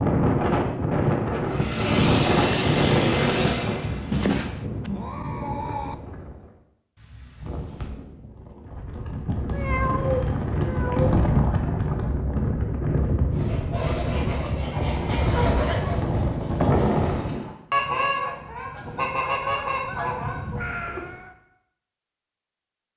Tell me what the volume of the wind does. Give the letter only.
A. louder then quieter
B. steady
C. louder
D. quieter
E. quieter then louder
E.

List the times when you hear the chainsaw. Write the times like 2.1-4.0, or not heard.
1.4-4.3.